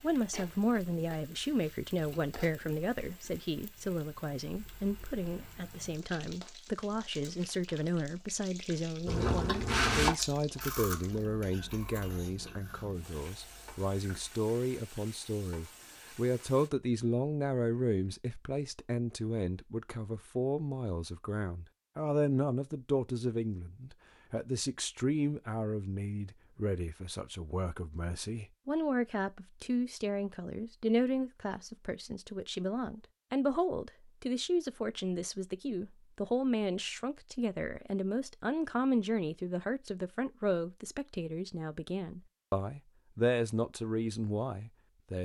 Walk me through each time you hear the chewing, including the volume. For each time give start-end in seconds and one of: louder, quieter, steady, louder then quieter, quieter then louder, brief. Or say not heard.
9.1-14.3 quieter.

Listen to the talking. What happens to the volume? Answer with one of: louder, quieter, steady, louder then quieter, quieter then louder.
steady.